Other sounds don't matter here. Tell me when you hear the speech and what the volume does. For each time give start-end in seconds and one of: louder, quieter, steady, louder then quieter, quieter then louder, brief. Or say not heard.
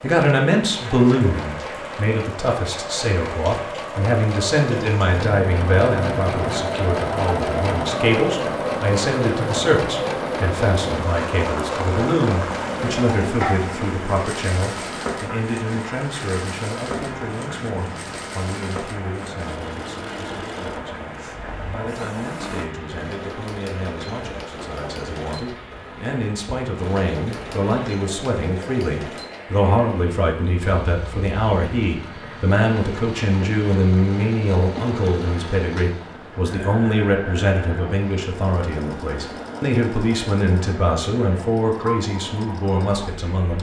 0.0-43.5 quieter then louder.